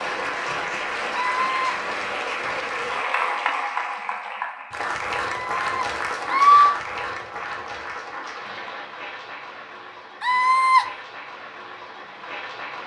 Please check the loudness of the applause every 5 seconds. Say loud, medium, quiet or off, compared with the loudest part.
loud, loud, medium.